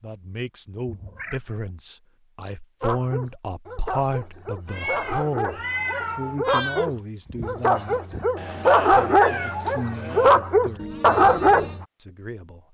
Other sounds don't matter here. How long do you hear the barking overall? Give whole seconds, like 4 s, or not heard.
9 s.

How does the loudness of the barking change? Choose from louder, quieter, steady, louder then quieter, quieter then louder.
louder.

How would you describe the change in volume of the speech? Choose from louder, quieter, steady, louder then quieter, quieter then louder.
louder then quieter.